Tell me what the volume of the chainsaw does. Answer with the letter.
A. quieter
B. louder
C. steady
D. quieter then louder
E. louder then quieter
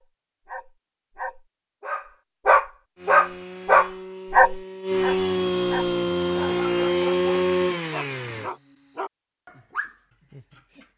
B.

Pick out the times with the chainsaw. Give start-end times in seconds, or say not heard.
3.0-8.5.